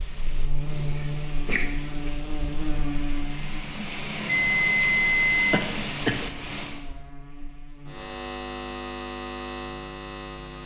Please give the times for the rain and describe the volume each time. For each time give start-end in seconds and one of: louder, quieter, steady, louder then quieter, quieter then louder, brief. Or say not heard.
0.0-6.8 louder.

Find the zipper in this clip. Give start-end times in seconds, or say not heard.
not heard.